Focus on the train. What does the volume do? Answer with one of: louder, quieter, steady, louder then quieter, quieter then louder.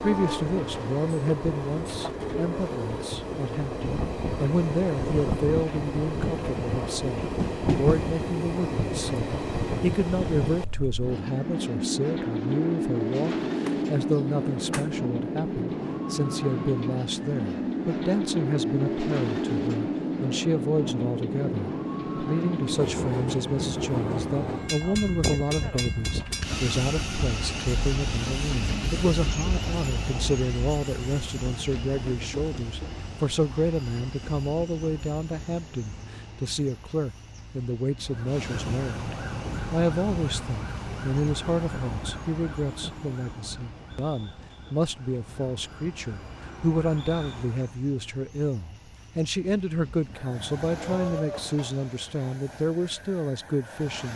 quieter.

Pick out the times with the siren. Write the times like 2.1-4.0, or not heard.
38.0-47.8.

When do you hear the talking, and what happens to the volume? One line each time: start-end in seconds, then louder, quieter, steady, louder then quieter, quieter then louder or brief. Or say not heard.
0.0-54.1 steady.